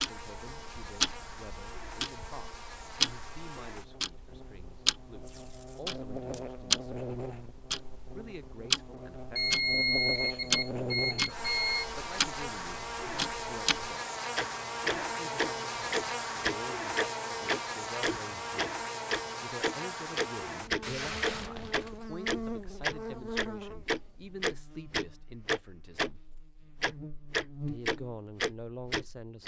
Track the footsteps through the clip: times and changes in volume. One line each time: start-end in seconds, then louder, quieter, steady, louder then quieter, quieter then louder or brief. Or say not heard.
not heard.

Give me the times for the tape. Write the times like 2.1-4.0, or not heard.
5.2-6.4, 20.8-22.0.